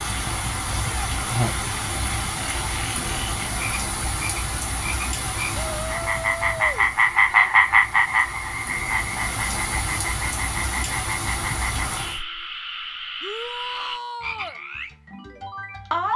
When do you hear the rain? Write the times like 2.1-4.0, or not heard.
0.0-12.2.